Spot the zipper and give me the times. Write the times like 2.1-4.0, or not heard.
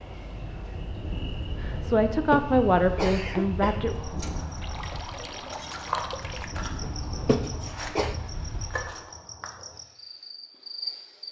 not heard.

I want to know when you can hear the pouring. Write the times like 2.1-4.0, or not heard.
4.6-6.5.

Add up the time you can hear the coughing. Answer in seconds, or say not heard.
3 s.